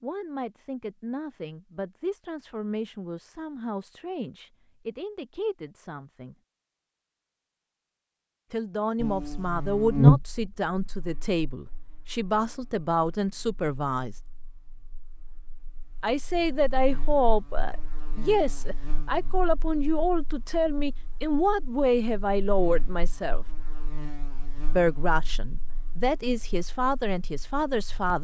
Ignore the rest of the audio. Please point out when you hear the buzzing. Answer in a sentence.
You can hear the buzzing from 9.0 to 28.1 s.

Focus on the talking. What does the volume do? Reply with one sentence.
The loudness of the talking goes up.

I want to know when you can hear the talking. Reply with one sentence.
The talking can be heard from 0.0 to 6.3 s, from 8.5 to 14.2 s, from 16.0 to 23.4 s and from 24.8 to 28.1 s.